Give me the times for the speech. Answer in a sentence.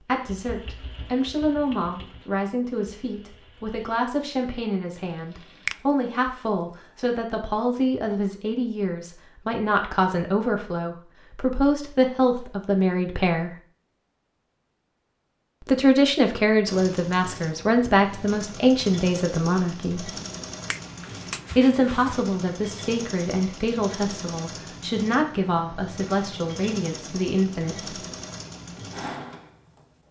You can hear the speech from 0.0 to 13.6 s, from 15.7 to 20.1 s and from 21.6 to 28.0 s.